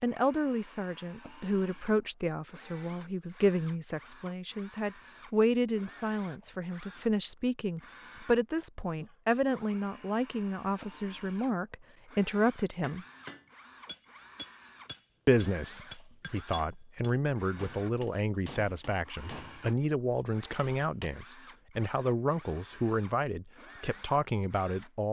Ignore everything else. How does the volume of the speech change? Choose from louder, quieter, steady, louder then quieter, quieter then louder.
steady.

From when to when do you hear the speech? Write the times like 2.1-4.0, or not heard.
0.0-13.1, 15.2-25.0.